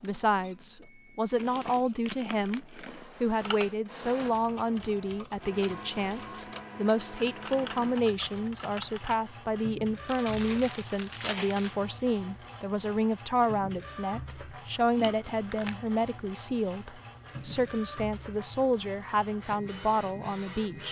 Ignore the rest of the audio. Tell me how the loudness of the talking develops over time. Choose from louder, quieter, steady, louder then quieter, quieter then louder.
steady.